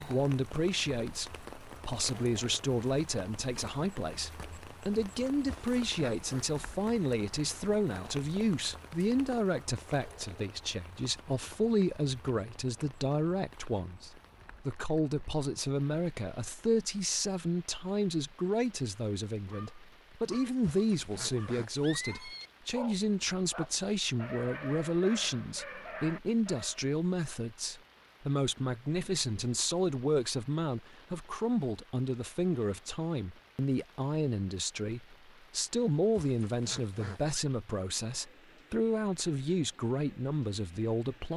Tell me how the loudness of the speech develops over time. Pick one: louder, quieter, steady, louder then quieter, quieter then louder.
steady.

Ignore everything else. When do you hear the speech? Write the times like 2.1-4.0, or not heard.
0.0-41.3.